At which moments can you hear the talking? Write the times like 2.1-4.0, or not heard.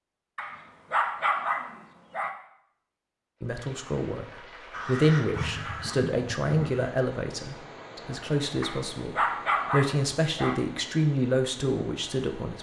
3.4-4.2, 4.8-12.5.